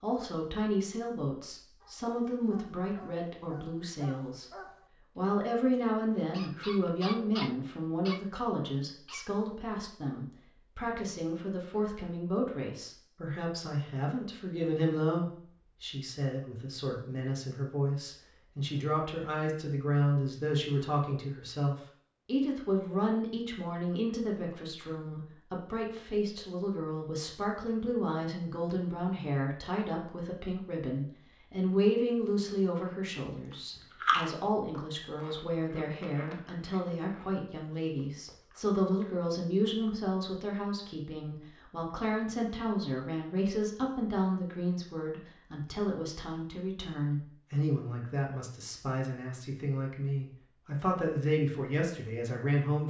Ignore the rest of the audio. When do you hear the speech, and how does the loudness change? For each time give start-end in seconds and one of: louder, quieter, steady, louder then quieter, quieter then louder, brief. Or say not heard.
0.0-52.8 steady.